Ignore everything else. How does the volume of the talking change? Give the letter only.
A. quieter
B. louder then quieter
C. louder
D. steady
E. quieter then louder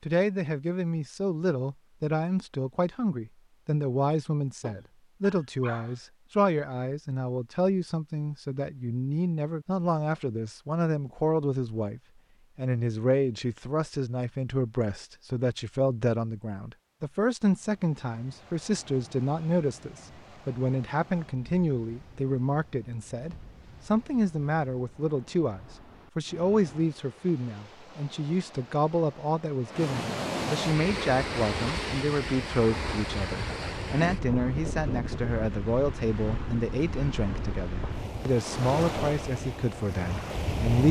D.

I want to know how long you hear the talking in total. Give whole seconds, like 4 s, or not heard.
41 s.